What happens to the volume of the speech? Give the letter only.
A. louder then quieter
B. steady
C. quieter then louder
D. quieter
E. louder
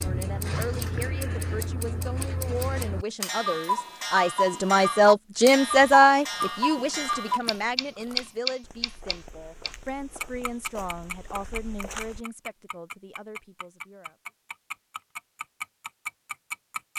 A.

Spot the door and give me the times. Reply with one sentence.
You can't hear the door here.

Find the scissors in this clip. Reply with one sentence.
The scissors can be heard from 0.1 to 1.1 s.